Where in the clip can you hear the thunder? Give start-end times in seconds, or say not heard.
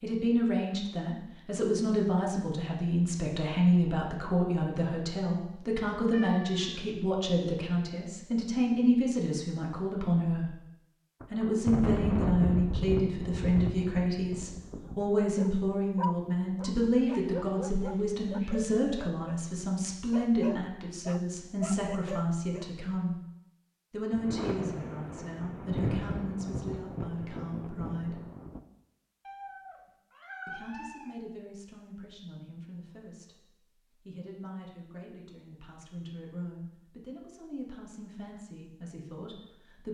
11.2-15.0, 24.1-28.6.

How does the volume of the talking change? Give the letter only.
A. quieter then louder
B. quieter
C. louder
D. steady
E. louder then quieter
B.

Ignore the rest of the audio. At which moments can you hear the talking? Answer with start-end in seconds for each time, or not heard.
0.0-10.6, 11.3-23.2, 23.9-28.2, 30.4-39.8.